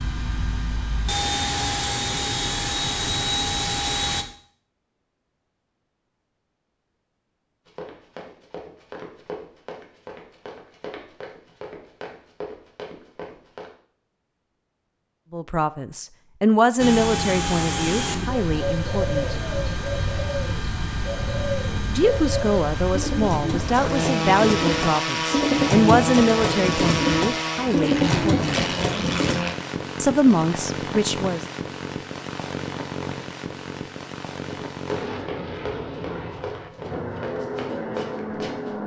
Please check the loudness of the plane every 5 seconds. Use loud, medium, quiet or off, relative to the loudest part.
loud, off, off, loud, loud, loud, medium, medium.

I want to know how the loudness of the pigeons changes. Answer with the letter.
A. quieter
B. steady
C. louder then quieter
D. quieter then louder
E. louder
E.